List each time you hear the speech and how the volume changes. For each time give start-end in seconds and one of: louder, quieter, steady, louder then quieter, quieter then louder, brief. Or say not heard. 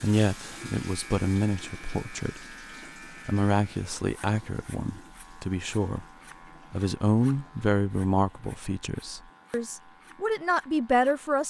0.0-2.5 brief
3.2-6.0 brief
6.7-11.4 quieter then louder.